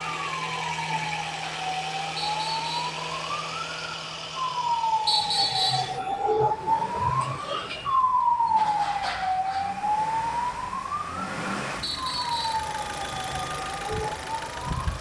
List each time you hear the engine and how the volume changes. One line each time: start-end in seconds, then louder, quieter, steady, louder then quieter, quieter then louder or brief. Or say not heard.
0.0-14.9 quieter then louder.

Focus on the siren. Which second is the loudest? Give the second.
8 s.